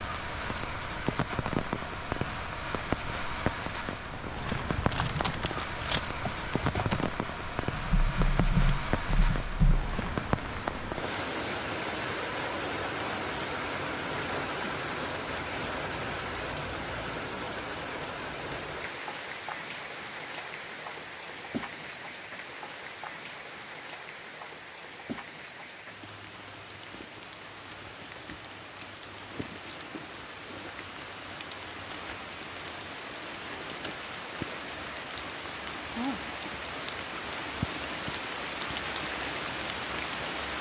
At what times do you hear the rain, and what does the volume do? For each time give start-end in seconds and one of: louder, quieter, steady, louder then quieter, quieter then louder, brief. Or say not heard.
0.0-40.5 quieter then louder.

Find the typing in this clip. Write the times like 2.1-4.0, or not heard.
4.3-9.9.